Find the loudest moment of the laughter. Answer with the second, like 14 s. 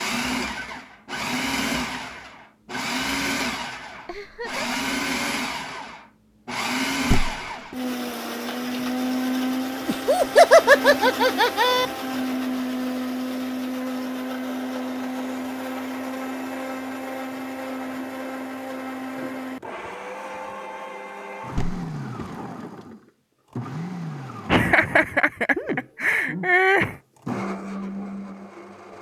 11 s.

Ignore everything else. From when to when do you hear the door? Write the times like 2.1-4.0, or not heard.
7.0-7.8, 21.5-22.2.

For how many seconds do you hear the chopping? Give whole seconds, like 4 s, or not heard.
not heard.